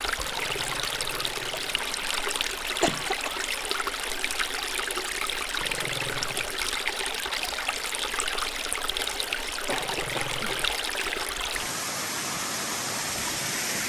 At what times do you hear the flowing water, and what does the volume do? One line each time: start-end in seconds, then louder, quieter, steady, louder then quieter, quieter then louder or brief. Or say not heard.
0.0-13.8 steady.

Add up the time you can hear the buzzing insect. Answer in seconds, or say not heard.
not heard.